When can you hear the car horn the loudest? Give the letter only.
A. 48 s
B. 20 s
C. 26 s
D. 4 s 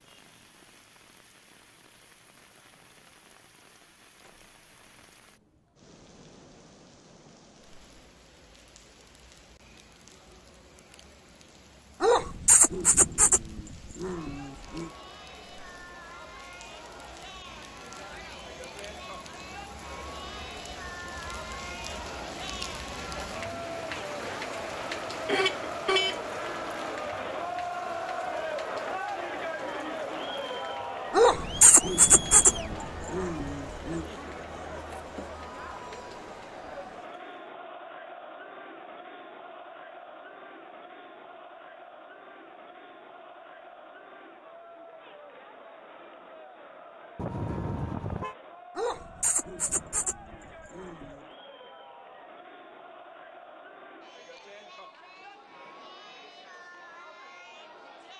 C.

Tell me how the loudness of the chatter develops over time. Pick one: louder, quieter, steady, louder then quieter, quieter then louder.
louder then quieter.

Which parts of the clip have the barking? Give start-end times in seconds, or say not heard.
12.0-14.9, 31.1-34.0, 48.8-51.2.